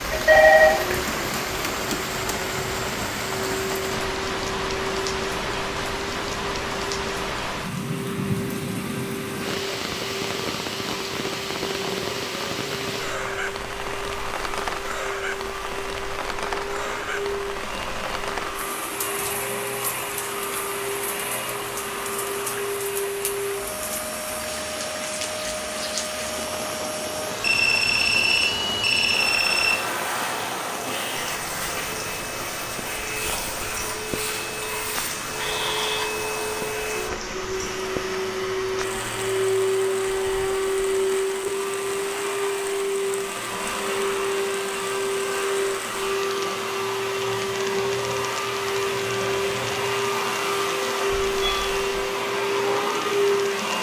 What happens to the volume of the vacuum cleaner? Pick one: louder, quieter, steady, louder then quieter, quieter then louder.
louder.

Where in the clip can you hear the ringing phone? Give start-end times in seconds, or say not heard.
0.1-0.8, 27.4-29.8, 51.1-51.8.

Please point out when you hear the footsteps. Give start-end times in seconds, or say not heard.
not heard.